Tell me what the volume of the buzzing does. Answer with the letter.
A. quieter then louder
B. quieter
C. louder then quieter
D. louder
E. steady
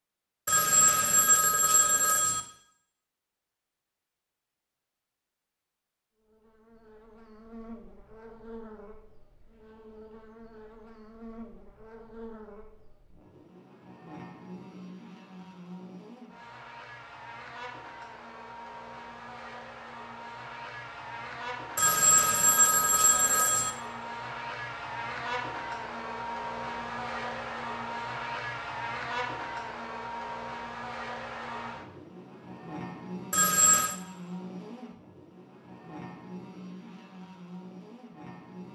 C.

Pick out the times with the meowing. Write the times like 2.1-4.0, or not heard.
not heard.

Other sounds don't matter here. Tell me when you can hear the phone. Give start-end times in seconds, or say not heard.
0.5-2.4, 21.8-23.7, 33.3-34.0.